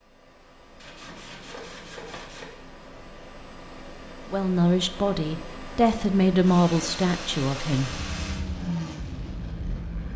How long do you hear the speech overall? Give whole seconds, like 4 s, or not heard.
4 s.